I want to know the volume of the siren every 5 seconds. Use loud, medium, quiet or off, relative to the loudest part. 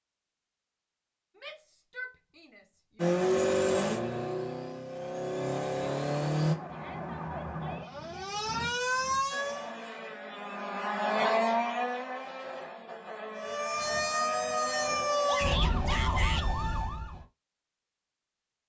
off, loud, loud, loud.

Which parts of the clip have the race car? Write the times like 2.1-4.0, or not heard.
3.0-6.5, 9.3-15.6.